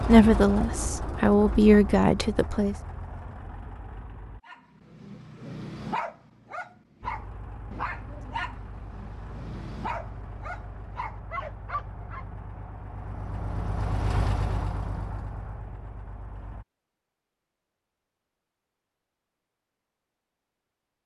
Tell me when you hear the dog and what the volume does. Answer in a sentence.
You can hear the dog from 4.5 to 12.2 s, at a steady volume.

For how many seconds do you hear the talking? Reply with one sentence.
The talking can be heard for 3 seconds in total.